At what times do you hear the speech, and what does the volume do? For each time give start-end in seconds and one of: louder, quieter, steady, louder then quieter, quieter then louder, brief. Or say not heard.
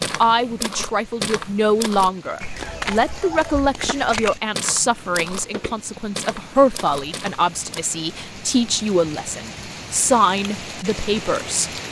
0.0-11.7 steady.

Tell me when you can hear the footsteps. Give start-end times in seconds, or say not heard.
0.0-7.8.